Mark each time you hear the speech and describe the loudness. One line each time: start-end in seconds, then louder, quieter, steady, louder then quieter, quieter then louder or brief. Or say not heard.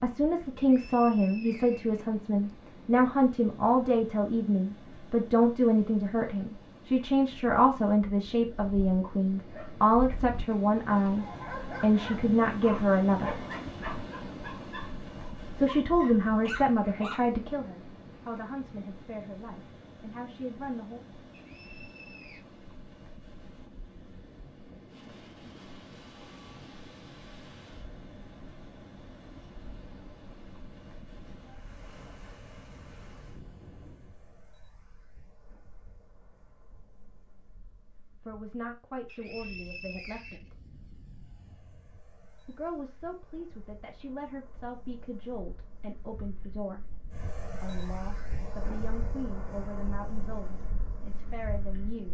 0.0-13.4 steady
15.6-21.1 quieter
38.2-40.6 brief
42.5-46.9 steady
47.6-52.0 steady.